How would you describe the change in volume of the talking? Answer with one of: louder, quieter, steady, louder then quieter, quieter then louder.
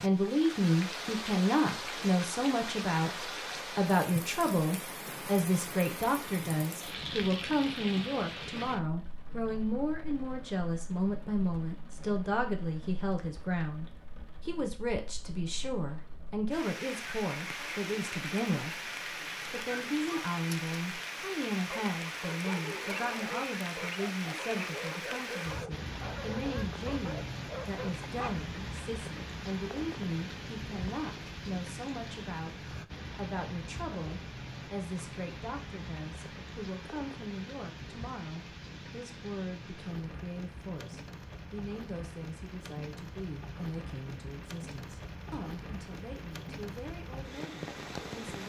quieter.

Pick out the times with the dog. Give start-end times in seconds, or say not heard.
21.6-28.4.